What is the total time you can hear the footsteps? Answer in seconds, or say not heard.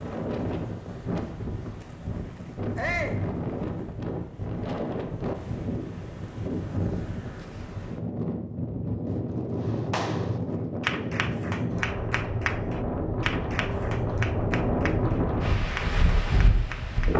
not heard.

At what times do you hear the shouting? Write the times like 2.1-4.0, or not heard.
2.8-3.2.